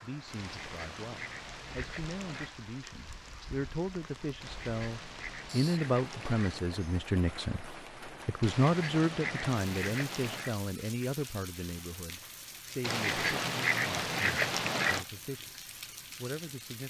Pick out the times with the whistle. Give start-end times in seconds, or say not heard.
not heard.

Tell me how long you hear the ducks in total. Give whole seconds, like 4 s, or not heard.
9 s.